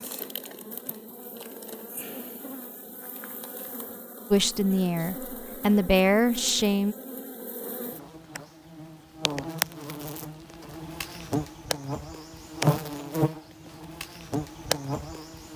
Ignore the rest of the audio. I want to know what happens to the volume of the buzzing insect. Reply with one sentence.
The volume of the buzzing insect goes up.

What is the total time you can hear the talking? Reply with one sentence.
The talking can be heard for 3 seconds in total.